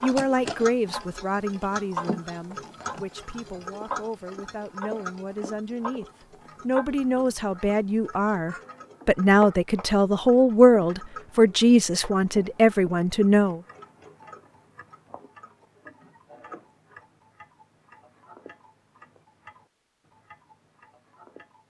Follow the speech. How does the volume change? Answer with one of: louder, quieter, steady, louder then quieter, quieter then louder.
quieter then louder.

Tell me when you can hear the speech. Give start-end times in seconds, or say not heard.
0.0-13.6.